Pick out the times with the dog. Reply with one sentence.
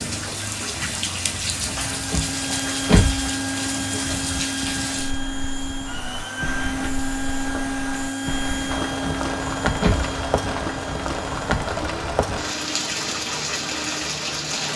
You can't hear the dog here.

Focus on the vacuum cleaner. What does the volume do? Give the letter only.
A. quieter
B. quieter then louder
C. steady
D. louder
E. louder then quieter
A.